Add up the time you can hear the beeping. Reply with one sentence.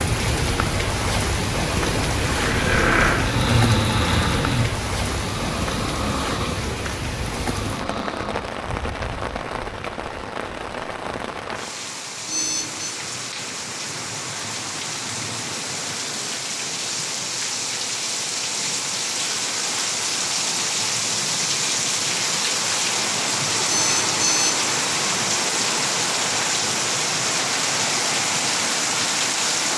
You can hear the beeping for 2 seconds altogether.